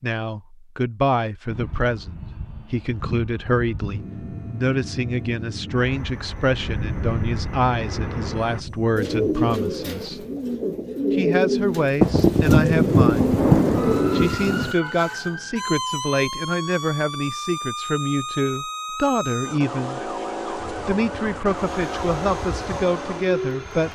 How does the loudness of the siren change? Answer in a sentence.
The volume of the siren stays about the same.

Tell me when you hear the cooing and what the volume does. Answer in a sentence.
You can hear the cooing from 8.9 to 14.4 s, at a steady volume.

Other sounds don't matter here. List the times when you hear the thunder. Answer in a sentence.
The thunder can be heard from 5.9 to 9.6 s and from 12.0 to 14.8 s.